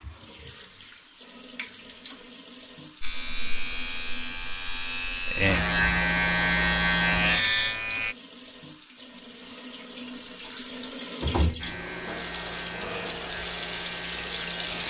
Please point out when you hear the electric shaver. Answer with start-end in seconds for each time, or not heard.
3.0-8.2, 11.6-14.8.